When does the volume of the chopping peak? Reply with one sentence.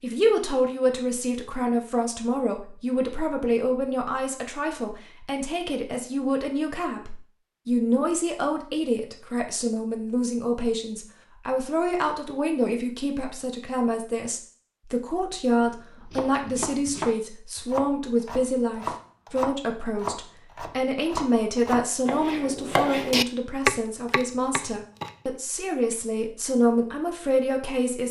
The volume of the chopping peaks at 24 seconds.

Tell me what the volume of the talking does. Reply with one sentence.
The volume of the talking stays about the same.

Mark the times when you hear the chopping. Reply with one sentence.
The chopping can be heard from 15.6 to 25.1 s.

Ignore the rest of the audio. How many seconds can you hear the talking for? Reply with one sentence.
The talking can be heard for 28 seconds in total.